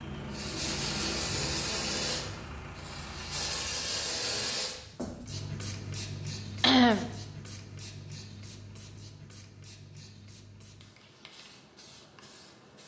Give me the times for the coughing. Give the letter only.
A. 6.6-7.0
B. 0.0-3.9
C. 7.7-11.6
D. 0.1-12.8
A.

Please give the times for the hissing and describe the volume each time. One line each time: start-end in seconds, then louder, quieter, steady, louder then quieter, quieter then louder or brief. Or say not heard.
0.1-12.8 quieter.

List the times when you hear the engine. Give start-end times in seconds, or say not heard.
0.0-3.9.